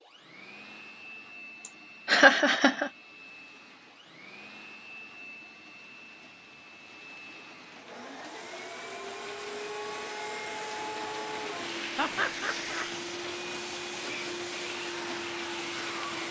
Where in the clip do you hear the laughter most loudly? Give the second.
2 s.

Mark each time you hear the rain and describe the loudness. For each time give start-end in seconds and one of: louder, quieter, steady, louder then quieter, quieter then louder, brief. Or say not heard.
3.2-16.2 louder.